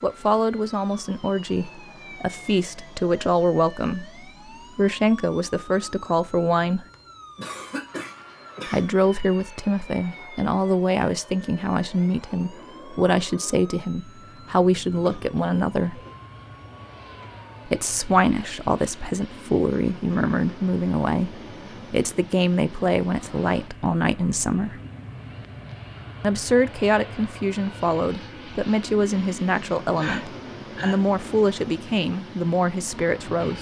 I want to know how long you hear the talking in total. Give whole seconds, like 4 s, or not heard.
29 s.